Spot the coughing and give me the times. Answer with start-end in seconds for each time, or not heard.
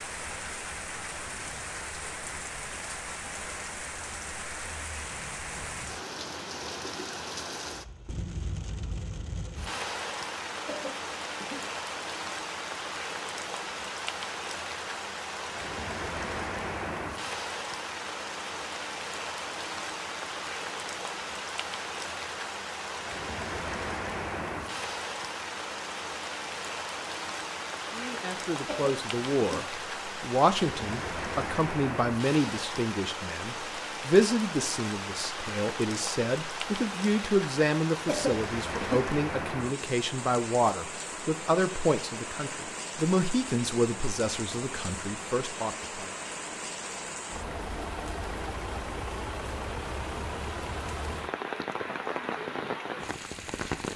10.7-11.7, 28.6-29.6, 38.0-39.0.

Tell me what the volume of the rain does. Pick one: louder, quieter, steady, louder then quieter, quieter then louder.
steady.